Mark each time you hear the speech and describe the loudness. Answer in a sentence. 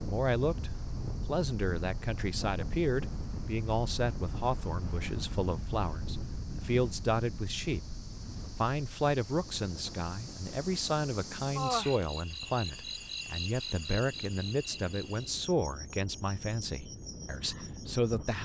You can hear the speech from 0.0 to 18.4 s, at a steady volume.